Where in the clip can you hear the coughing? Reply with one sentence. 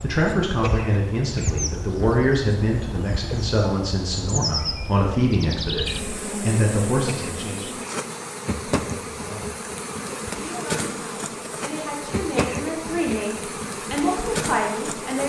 You can hear the coughing from 0.6 to 1.6 s, from 7.0 to 8.0 s and from 12.3 to 13.2 s.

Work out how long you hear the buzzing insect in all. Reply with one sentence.
The buzzing insect can be heard for 15 seconds in total.